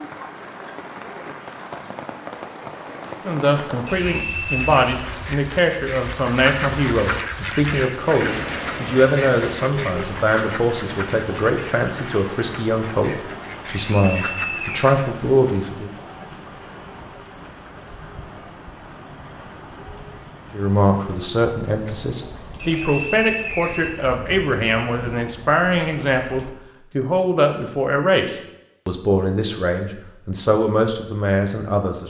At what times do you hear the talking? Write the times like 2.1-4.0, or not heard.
3.2-15.9, 20.5-32.0.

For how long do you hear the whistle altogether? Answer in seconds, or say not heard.
4 s.